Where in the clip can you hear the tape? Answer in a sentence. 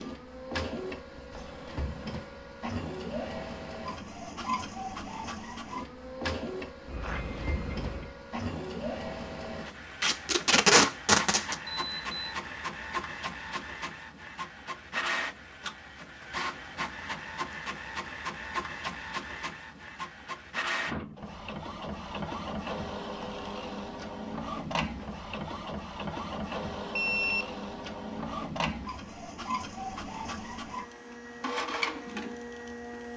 You can hear the tape from 10.0 to 11.6 s.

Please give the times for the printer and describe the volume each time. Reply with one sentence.
The printer can be heard from 0.0 to 33.1 s, at a steady volume.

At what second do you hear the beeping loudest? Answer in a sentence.
The loudest moment of the beeping is at 27 seconds.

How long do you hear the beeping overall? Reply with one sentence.
The beeping can be heard for 3 seconds in total.